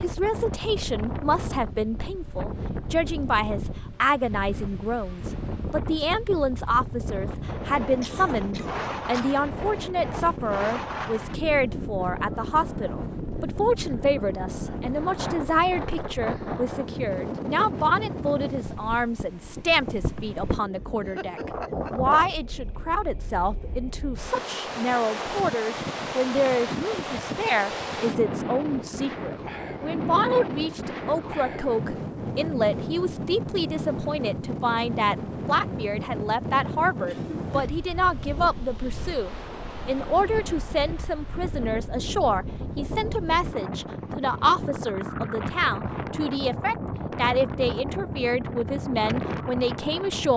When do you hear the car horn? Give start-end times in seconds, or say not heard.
not heard.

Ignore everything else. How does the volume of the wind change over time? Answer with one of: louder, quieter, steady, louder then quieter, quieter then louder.
steady.